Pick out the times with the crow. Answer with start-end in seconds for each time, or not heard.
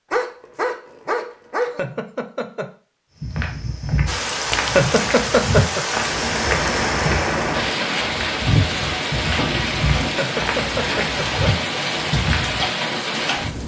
not heard.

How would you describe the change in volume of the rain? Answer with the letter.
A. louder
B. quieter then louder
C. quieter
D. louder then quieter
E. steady
E.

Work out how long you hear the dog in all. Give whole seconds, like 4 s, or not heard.
2 s.